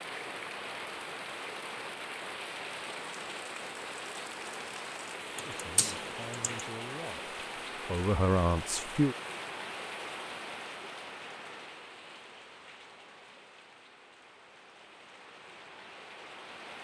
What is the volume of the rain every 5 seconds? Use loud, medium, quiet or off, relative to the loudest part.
loud, loud, medium, medium.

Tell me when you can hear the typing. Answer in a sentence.
The typing can be heard from 5.3 to 6.7 s.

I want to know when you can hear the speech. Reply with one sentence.
The speech can be heard from 5.4 to 9.2 s.